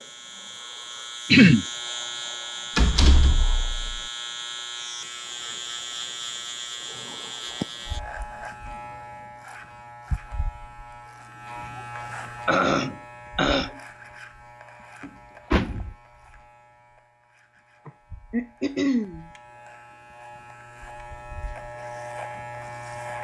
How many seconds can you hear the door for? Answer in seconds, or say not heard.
2 s.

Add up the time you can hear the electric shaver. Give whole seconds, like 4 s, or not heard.
23 s.